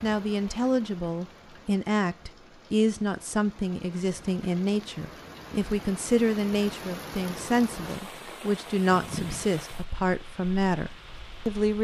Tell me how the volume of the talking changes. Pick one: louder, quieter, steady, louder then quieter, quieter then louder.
steady.